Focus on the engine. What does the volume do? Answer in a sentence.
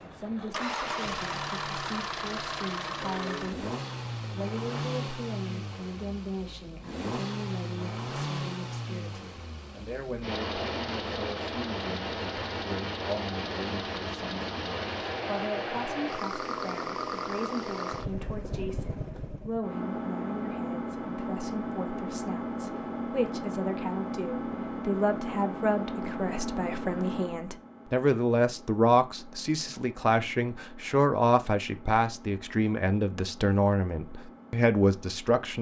The loudness of the engine goes down.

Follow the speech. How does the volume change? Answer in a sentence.
The volume of the speech goes up.